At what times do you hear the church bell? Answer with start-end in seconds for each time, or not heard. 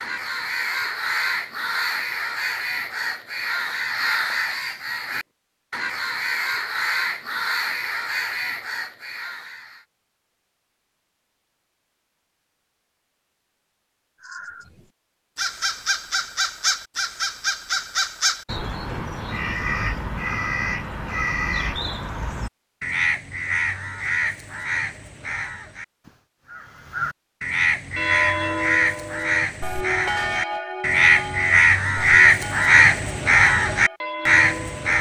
27.9-34.9.